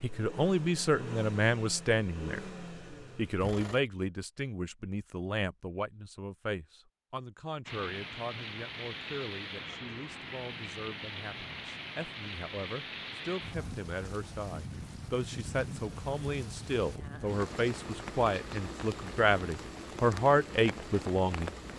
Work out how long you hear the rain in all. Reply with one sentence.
The rain can be heard for 14 seconds in total.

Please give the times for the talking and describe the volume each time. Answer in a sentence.
The talking can be heard briefly from 0.0 to 2.4 s; and from 3.1 to 21.6 s, getting quieter then louder.